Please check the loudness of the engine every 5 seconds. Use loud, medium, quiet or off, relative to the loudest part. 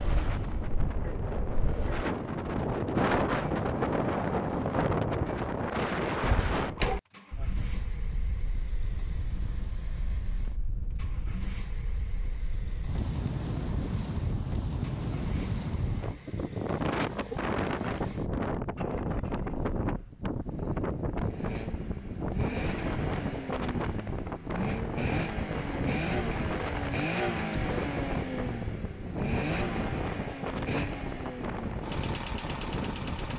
quiet, quiet, quiet, quiet, medium, loud, medium.